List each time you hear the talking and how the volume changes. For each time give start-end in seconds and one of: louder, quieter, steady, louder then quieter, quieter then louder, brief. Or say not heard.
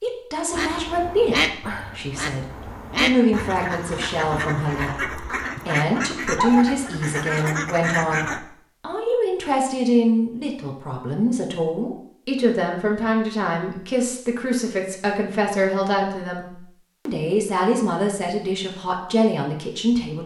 0.0-20.2 steady.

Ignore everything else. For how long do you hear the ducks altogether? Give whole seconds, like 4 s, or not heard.
8 s.